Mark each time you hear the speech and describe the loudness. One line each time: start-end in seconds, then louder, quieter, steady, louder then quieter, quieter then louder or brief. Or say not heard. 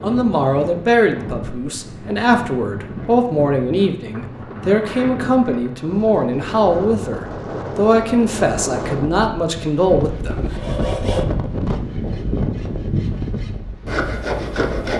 0.0-10.5 steady.